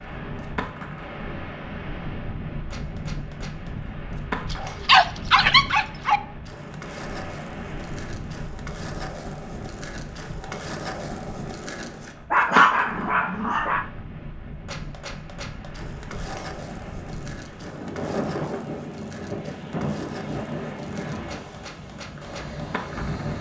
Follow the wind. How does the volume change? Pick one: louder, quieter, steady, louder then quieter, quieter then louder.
quieter then louder.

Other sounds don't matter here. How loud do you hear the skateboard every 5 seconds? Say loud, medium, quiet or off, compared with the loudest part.
medium, medium, loud, medium, medium.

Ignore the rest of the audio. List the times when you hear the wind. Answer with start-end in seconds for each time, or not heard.
0.0-23.3.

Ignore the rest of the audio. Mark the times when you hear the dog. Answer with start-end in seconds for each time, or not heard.
4.5-6.2, 12.3-13.8.